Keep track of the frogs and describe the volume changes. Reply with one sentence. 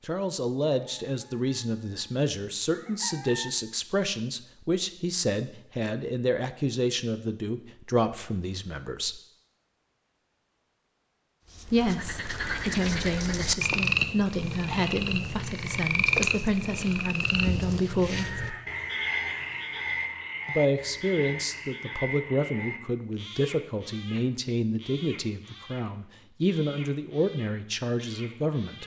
The volume of the frogs goes down.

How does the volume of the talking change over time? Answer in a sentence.
The volume of the talking stays about the same.